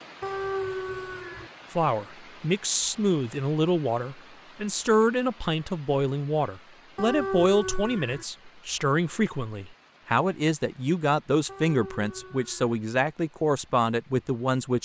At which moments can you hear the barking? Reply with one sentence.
The barking can be heard from 0.2 to 1.5 s, from 7.0 to 8.2 s and from 11.4 to 12.8 s.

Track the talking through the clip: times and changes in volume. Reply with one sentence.
You can hear the talking from 1.8 to 14.8 s, at a steady volume.